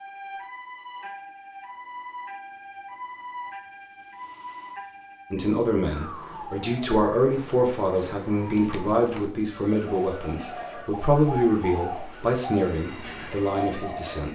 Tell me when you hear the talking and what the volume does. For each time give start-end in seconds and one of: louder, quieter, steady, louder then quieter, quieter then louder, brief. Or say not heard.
5.3-14.2 steady.